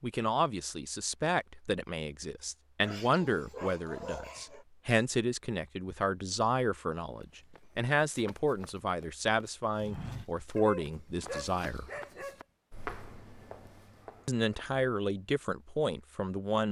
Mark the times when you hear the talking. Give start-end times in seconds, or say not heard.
0.0-11.9, 14.2-16.6.